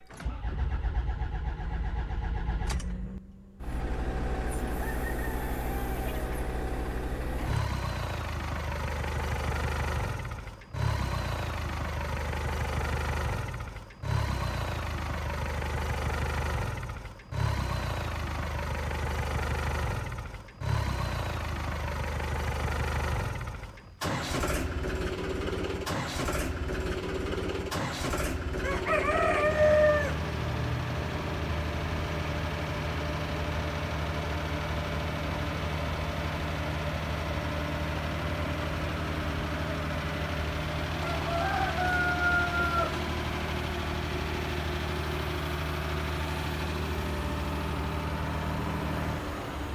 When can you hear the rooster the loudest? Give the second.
30 s.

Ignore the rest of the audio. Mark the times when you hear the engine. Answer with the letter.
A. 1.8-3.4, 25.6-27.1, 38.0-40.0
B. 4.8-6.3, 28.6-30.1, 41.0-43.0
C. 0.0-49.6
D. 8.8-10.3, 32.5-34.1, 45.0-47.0
C.